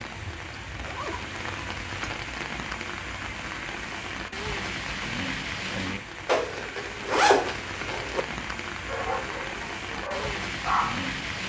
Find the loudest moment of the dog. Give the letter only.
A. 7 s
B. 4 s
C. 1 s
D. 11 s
D.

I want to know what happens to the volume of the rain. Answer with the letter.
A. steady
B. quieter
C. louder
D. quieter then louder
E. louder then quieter
A.